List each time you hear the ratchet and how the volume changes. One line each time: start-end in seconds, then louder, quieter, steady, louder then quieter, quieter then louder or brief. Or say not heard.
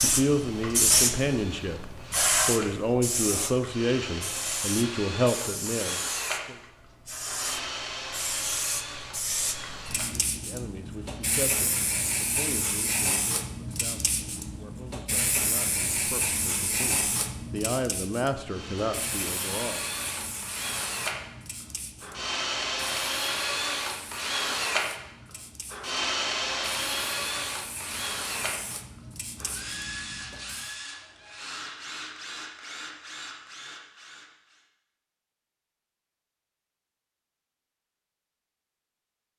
not heard.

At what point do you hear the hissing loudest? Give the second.
1 s.